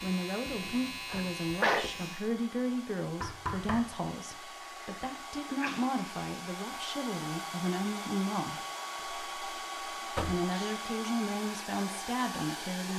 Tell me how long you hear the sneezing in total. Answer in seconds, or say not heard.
2 s.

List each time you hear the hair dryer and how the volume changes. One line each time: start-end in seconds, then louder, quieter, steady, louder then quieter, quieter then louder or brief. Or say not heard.
0.0-12.9 louder.